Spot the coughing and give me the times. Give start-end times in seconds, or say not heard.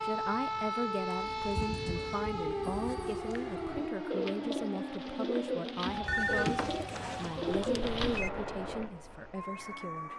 not heard.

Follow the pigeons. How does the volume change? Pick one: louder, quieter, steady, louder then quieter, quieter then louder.
quieter then louder.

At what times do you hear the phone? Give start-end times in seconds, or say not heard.
1.9-3.3, 6.0-8.3.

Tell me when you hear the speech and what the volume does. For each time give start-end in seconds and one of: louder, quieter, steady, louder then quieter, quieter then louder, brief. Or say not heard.
0.0-10.1 steady.